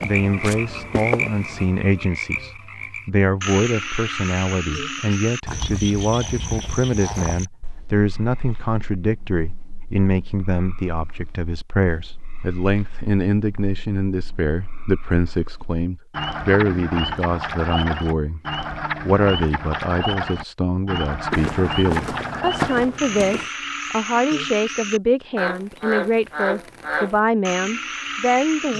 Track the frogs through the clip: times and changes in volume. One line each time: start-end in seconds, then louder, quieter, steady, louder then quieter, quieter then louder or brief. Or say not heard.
0.0-28.7 quieter then louder.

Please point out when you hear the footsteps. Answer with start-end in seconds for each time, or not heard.
0.0-1.7, 21.3-23.4.